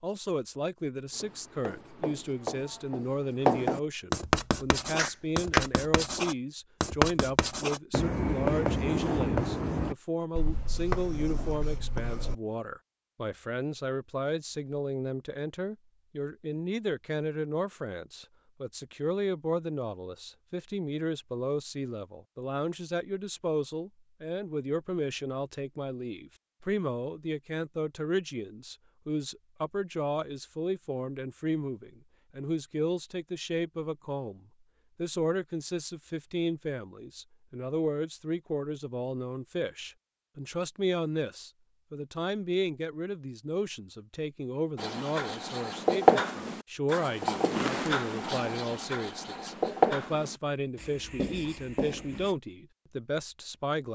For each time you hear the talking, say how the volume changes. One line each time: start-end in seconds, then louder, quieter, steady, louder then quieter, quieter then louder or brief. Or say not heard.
0.0-53.9 steady.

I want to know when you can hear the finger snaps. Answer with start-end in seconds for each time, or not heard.
5.0-5.7.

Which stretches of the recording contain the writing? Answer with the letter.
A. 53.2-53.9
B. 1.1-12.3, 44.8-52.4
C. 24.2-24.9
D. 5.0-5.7
B.